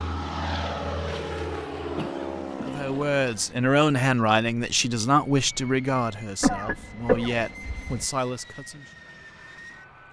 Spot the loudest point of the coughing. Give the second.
7 s.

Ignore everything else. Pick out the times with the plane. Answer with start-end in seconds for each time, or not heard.
0.0-10.0.